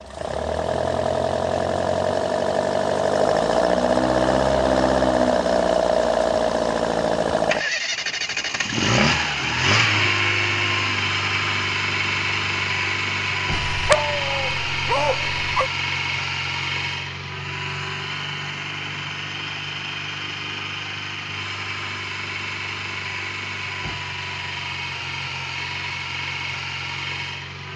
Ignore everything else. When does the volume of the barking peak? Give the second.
14 s.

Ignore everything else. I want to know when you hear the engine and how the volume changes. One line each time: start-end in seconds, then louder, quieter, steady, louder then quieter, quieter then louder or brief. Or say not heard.
0.0-27.7 quieter.